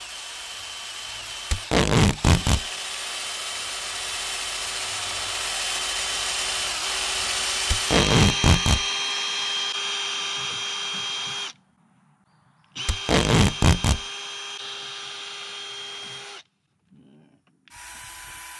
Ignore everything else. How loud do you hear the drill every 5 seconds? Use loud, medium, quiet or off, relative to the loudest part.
medium, loud, medium, quiet.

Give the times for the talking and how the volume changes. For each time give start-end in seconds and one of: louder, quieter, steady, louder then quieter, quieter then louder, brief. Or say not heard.
not heard.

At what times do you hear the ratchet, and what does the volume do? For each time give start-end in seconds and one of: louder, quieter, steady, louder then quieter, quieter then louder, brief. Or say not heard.
not heard.